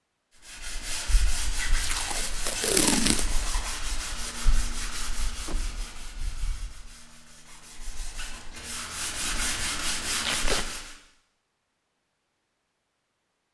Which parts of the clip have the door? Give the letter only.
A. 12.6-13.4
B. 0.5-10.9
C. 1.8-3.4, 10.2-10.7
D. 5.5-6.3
D.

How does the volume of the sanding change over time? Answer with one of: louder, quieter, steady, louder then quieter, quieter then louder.
quieter then louder.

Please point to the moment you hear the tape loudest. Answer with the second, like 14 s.
3 s.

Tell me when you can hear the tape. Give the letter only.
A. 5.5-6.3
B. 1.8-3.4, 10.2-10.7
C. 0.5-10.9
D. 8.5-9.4
B.